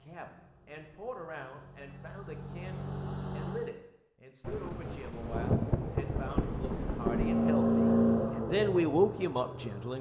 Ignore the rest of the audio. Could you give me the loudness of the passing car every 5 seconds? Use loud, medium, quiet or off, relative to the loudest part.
quiet, loud.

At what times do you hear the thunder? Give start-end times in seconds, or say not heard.
4.4-7.3.